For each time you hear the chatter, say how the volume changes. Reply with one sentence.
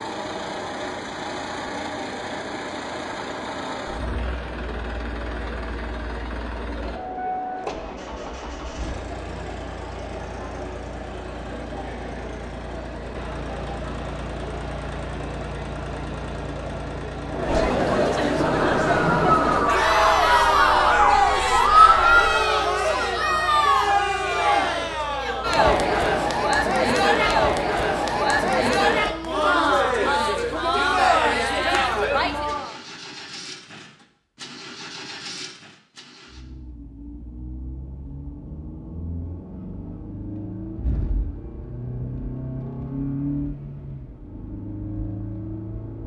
The chatter can be heard from 0.0 to 32.8 s, getting louder.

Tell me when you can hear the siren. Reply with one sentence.
You can hear the siren from 18.4 to 22.1 s.